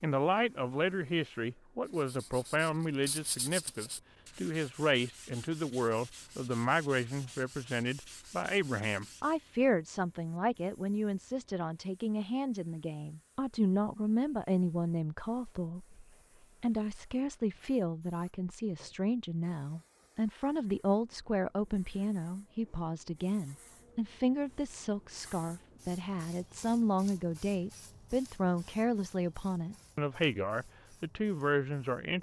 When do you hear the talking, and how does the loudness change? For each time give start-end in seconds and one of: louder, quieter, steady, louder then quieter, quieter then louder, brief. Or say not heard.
0.0-32.1 steady.